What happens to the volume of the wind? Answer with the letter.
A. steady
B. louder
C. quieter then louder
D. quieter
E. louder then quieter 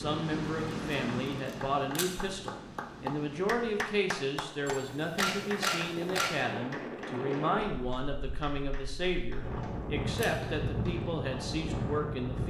C.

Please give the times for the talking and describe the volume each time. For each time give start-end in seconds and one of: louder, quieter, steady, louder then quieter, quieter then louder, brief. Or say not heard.
0.0-12.4 steady.